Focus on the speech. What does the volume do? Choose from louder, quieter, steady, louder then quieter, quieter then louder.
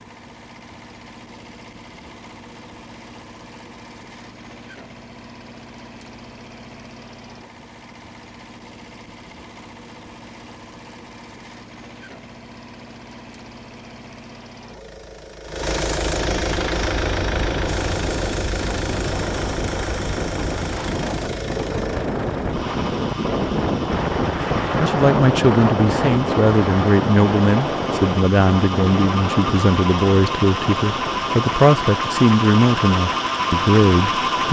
steady.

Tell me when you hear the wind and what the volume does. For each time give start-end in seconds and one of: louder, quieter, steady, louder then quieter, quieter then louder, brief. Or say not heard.
16.5-34.4 louder then quieter.